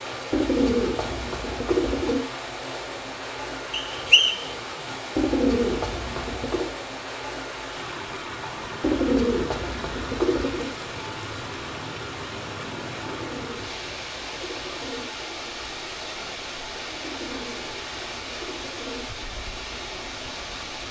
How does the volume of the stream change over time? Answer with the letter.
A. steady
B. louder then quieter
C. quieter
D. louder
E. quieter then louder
A.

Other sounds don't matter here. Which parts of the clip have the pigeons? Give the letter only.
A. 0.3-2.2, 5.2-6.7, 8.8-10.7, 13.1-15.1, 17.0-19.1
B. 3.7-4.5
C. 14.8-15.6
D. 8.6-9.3
A.